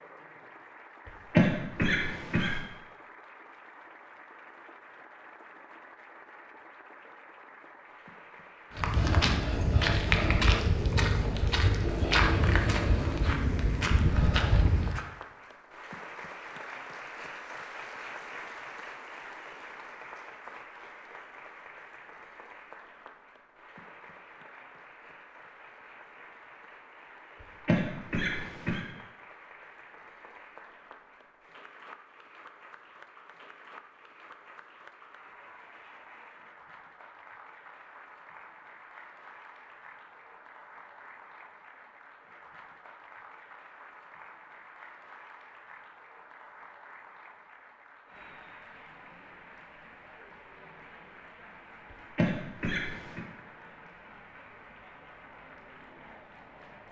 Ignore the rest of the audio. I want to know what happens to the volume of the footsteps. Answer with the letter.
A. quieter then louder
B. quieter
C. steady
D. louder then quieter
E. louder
C.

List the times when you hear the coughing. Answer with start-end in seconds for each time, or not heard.
1.3-2.6, 27.6-28.8, 52.1-53.2.